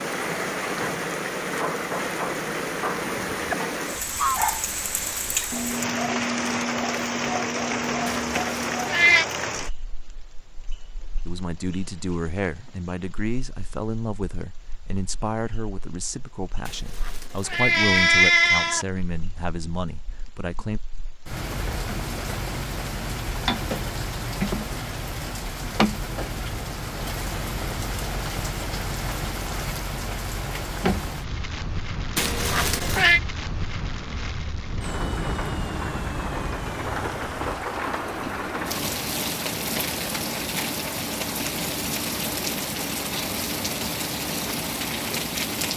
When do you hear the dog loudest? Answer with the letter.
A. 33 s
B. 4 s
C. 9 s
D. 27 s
B.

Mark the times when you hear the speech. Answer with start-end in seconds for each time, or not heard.
11.2-20.8.